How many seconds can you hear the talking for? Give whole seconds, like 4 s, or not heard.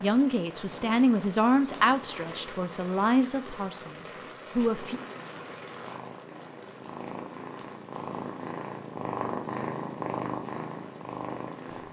5 s.